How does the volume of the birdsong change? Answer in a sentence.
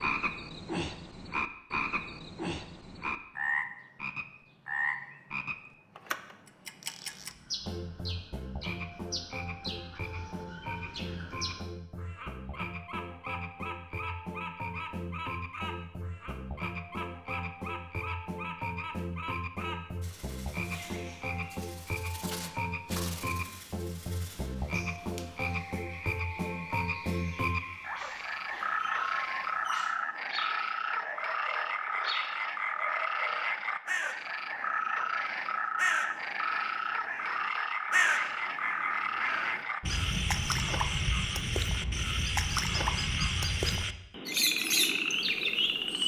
The loudness of the birdsong goes up.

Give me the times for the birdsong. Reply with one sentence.
You can hear the birdsong from 7.2 to 46.0 s.